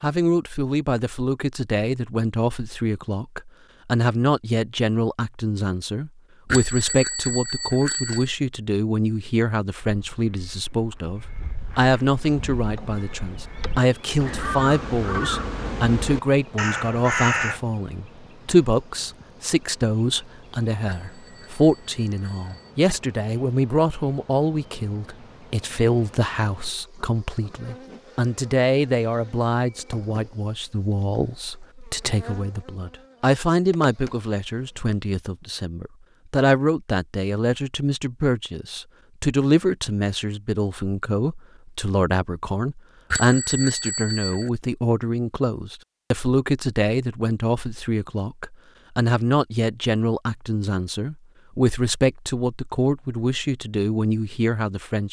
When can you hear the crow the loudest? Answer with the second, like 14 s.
17 s.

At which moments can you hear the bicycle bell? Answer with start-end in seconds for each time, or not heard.
6.5-8.3, 20.9-22.8, 43.1-44.5.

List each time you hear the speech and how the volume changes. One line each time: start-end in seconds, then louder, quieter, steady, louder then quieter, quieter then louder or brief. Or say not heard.
0.0-55.0 steady.